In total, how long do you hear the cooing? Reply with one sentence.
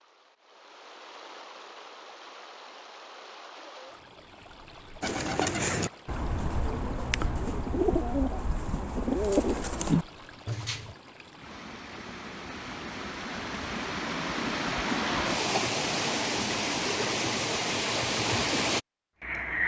You can hear the cooing for 6 seconds altogether.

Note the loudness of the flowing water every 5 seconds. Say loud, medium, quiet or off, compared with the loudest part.
quiet, quiet, medium, loud.